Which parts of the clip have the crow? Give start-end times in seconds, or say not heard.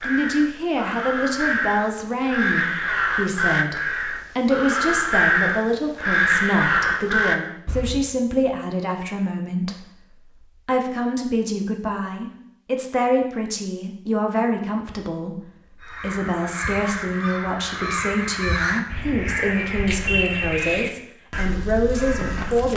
0.0-8.1, 15.8-22.7.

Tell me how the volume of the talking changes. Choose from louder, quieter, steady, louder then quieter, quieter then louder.
steady.